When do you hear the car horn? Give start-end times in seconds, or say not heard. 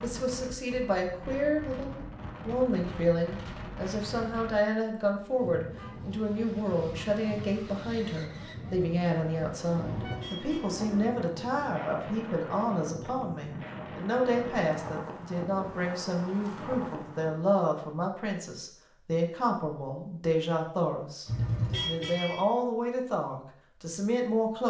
5.2-5.9, 9.9-10.7, 21.2-22.4.